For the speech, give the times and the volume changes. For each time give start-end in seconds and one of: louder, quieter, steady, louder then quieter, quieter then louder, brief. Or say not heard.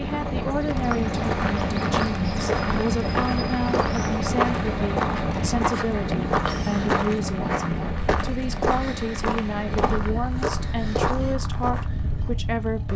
0.0-12.9 steady.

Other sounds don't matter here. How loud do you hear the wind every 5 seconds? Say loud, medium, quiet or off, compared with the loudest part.
loud, loud, medium.